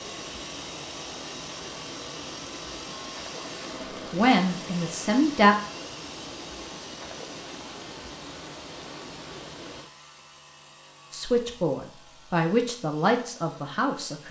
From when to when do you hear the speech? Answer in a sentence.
You can hear the speech from 4.1 to 5.5 s and from 11.1 to 14.2 s.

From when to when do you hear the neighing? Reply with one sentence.
The neighing can't be heard in this clip.